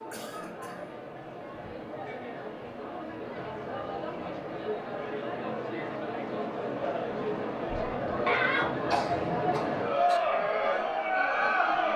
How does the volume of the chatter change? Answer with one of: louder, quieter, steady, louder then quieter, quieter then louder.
louder.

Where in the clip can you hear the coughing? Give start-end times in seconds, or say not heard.
0.1-0.9, 8.2-10.2.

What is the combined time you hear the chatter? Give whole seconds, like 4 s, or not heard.
12 s.